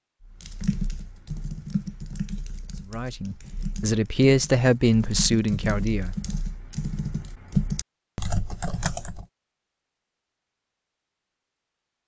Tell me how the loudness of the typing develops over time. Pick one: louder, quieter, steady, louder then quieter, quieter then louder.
quieter then louder.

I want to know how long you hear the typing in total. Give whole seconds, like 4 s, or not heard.
9 s.